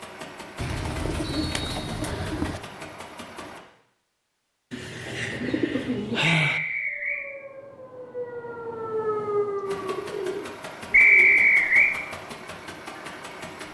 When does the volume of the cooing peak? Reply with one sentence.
The loudest moment of the cooing is at 6 seconds.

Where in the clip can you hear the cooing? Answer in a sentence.
You can hear the cooing from 0.6 to 2.6 s, from 4.7 to 6.6 s and from 9.6 to 11.5 s.